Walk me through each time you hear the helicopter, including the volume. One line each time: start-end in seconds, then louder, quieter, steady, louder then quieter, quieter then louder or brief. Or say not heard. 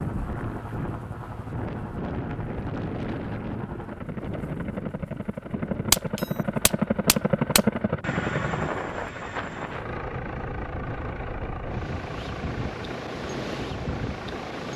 0.0-14.7 louder then quieter.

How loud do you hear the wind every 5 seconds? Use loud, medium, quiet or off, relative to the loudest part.
loud, medium, loud.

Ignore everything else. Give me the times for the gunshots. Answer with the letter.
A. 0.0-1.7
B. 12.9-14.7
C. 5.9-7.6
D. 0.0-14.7
C.